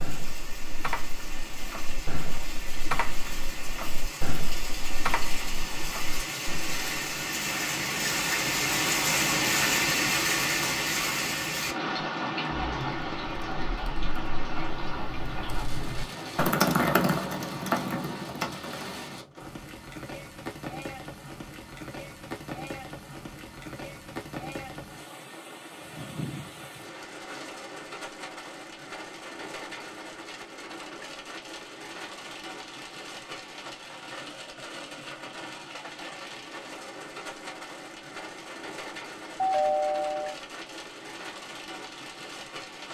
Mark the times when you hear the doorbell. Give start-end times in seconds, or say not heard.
39.4-40.4.